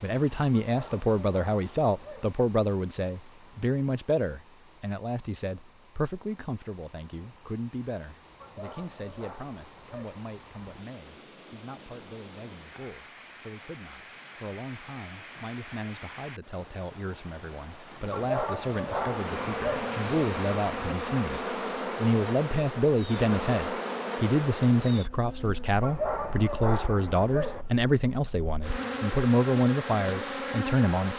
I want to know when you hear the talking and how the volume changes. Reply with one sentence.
You can hear the talking from 0.0 to 31.1 s, getting quieter then louder.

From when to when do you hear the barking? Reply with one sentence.
You can hear the barking from 0.6 to 2.4 s, from 8.4 to 10.2 s, from 18.1 to 19.9 s and from 25.8 to 27.6 s.